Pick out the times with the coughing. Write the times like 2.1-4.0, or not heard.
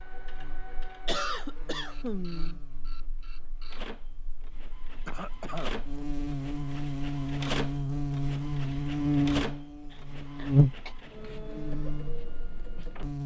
1.1-2.6, 5.0-5.7, 9.9-10.9.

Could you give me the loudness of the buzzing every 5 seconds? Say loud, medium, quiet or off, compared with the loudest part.
quiet, loud, loud.